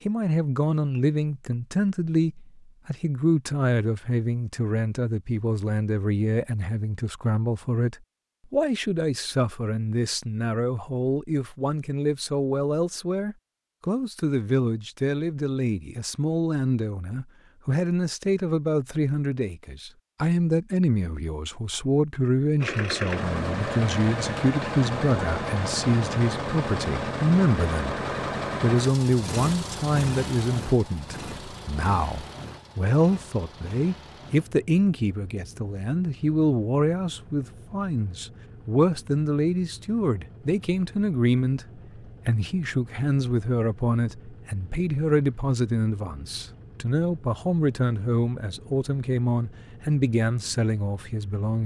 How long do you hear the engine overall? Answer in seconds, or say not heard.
29 s.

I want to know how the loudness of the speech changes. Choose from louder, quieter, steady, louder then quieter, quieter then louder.
steady.